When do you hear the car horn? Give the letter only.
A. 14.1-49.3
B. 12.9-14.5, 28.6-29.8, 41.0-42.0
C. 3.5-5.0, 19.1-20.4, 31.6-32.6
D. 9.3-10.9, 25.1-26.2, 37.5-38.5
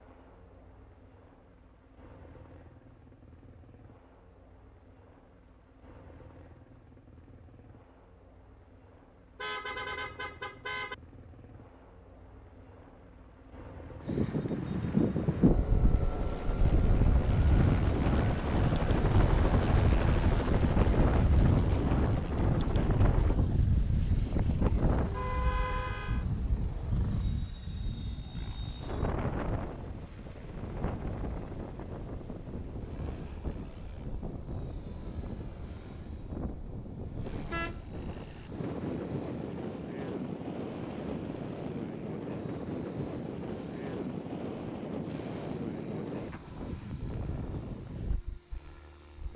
D.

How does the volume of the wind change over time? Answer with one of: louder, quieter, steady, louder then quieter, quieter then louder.
quieter.